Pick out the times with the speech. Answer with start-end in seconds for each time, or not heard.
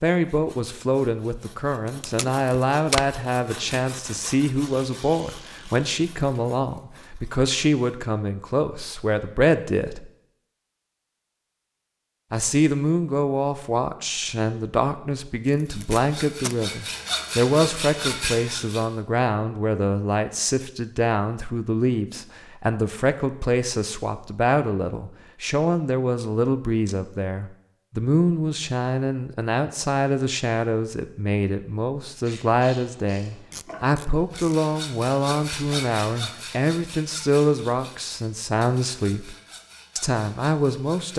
0.0-10.1, 12.3-39.4, 40.0-41.1.